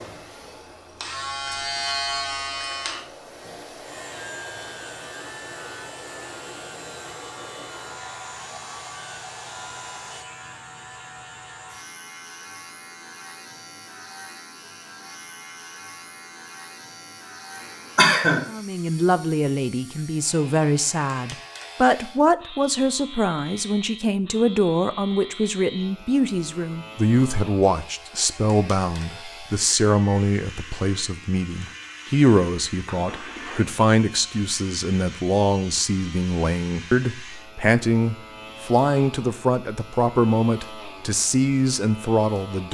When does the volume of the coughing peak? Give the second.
18 s.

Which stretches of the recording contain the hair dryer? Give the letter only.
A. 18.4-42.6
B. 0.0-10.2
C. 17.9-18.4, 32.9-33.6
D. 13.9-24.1
B.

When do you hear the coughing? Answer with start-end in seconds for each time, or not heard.
17.9-18.4, 32.9-33.6.